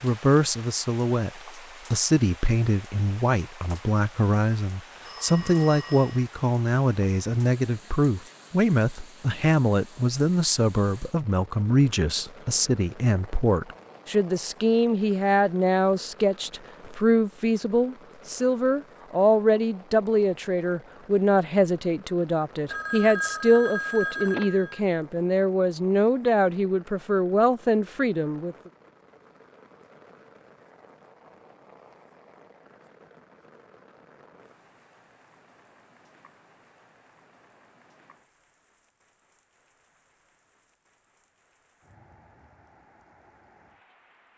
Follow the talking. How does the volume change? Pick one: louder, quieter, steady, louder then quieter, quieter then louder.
steady.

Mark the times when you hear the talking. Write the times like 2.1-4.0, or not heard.
0.0-28.6.